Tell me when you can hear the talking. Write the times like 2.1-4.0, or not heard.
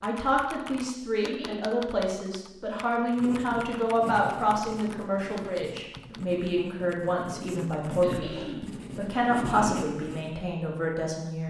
0.0-11.4.